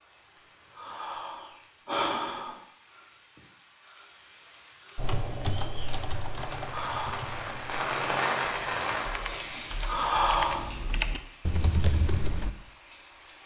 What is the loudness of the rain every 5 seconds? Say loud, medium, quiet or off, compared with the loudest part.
quiet, loud, quiet.